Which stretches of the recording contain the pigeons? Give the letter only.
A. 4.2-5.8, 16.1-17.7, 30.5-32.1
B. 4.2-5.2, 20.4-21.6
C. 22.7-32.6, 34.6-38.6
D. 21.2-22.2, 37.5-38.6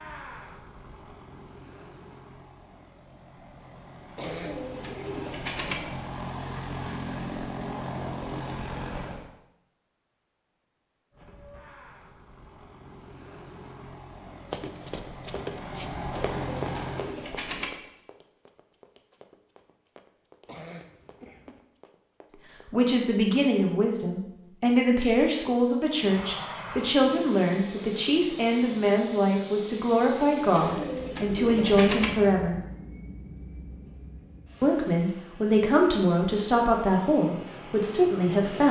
A.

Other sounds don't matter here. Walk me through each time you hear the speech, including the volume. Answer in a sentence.
The speech can be heard from 22.7 to 32.6 s, at a steady volume; and from 34.6 to 38.6 s, at a steady volume.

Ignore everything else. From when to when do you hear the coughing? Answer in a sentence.
You can hear the coughing from 4.2 to 5.2 s and from 20.4 to 21.6 s.